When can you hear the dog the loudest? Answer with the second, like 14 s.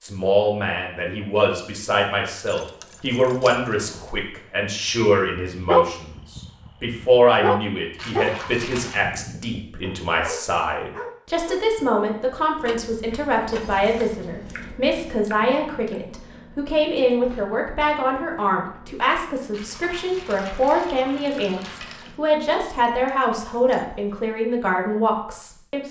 6 s.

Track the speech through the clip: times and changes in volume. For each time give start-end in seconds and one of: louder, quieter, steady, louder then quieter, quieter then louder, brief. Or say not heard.
0.0-25.8 steady.